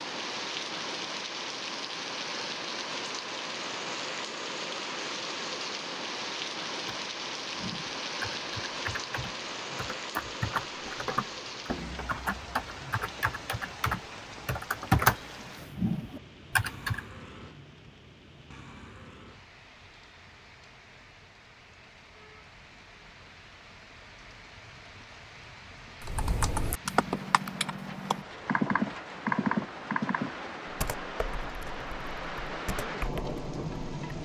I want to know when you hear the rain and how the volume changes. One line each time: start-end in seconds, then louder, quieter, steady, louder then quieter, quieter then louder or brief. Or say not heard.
0.0-34.2 quieter then louder.